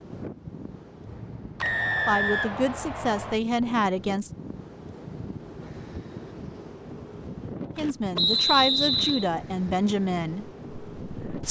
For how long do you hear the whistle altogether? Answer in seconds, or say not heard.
3 s.